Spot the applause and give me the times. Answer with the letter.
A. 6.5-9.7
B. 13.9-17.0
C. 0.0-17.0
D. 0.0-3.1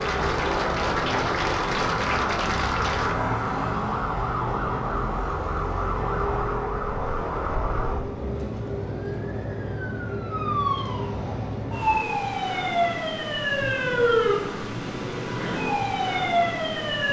D.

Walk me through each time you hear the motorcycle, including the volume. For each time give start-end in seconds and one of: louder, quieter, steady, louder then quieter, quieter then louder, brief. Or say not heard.
not heard.